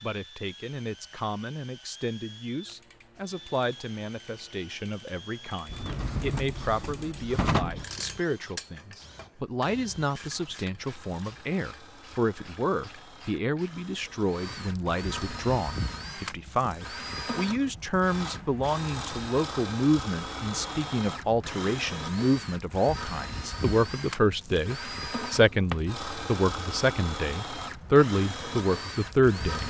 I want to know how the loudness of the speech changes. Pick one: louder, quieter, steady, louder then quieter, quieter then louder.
louder.